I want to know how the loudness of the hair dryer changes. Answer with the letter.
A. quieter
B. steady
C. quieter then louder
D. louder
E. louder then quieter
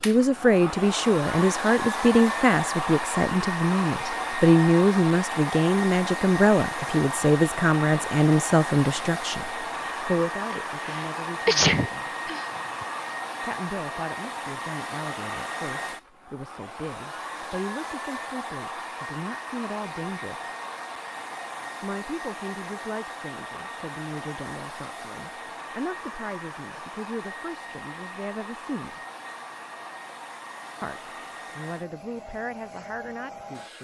A.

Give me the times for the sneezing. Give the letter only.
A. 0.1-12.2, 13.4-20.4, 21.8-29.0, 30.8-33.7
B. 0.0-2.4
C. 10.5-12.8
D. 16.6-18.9
C.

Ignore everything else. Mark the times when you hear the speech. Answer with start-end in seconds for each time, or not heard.
0.1-12.2, 13.4-20.4, 21.8-29.0, 30.8-33.7.